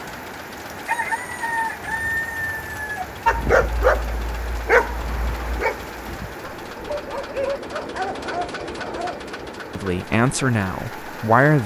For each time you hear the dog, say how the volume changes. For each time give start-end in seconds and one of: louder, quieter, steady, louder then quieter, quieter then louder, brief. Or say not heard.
3.2-9.2 quieter then louder.